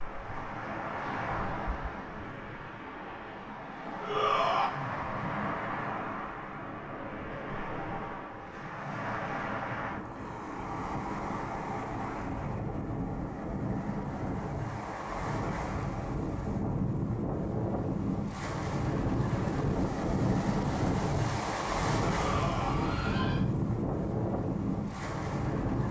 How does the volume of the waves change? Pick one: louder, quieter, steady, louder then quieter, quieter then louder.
louder.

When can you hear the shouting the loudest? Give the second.
4 s.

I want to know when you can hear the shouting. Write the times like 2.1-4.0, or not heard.
4.0-4.7, 22.1-23.4.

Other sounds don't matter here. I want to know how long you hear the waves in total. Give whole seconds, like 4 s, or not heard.
26 s.